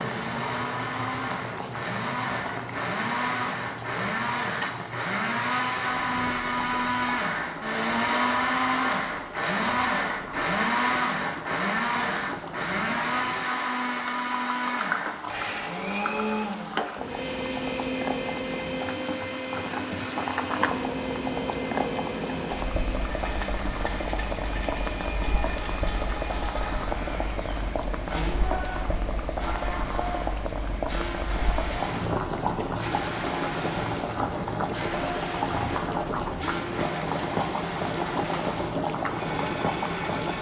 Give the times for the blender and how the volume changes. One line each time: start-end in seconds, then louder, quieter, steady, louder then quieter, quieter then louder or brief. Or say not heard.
0.0-40.3 quieter.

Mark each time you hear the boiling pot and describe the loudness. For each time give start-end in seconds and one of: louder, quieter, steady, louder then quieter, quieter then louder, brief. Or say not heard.
0.0-40.3 louder.